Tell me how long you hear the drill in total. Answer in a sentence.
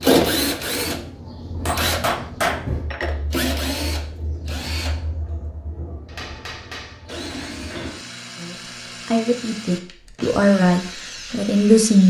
You can hear the drill for 12 seconds altogether.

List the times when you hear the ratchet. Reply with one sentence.
The ratchet can't be heard in this clip.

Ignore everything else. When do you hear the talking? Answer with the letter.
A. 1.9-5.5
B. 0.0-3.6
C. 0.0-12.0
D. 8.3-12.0
D.